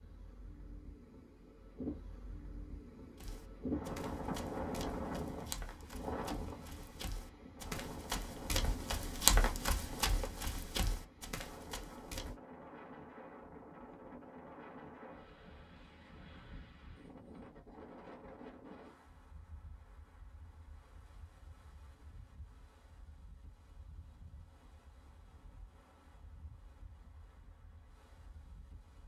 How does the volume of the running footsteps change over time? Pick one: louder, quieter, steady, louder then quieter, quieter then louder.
louder then quieter.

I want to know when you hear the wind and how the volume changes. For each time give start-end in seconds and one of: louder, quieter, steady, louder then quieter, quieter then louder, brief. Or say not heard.
0.0-29.0 quieter.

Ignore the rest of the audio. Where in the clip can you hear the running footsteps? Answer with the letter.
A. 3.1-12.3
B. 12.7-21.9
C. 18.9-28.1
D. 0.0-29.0
A.